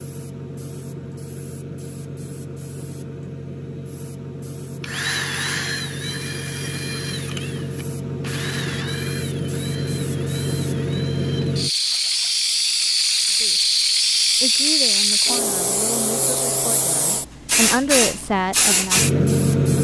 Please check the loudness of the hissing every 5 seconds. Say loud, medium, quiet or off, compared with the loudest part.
quiet, medium, loud, loud.